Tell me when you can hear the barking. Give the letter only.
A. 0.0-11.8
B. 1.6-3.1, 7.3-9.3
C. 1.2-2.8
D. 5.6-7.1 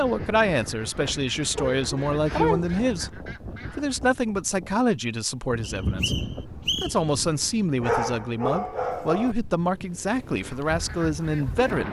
B.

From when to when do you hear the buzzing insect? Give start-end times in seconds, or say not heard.
not heard.